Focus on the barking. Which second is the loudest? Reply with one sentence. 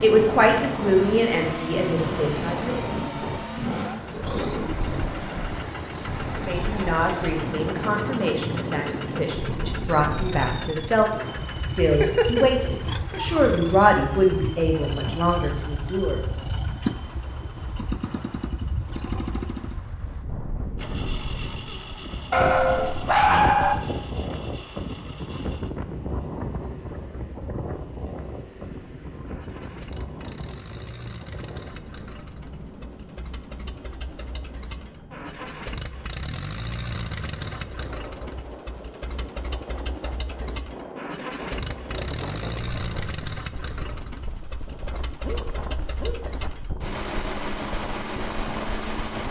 The volume of the barking peaks at 23 seconds.